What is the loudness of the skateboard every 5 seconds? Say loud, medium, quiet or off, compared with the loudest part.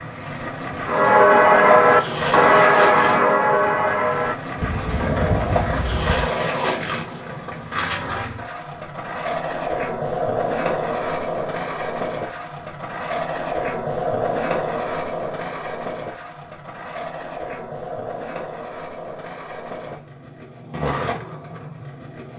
loud, loud, loud, medium, medium.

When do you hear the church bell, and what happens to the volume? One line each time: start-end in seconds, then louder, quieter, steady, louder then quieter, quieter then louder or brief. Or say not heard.
0.8-6.2 quieter.